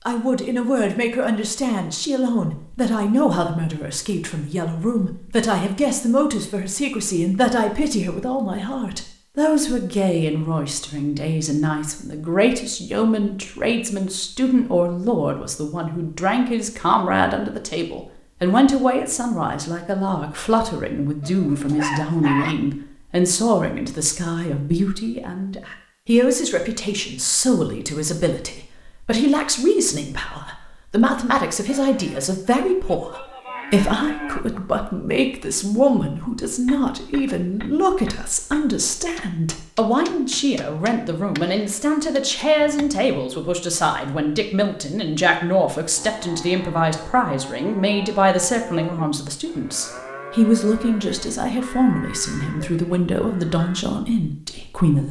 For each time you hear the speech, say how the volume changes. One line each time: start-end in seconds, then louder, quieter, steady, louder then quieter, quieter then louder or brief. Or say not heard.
0.1-55.0 steady.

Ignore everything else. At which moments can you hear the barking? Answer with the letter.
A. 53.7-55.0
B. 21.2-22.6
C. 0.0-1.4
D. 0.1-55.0
B.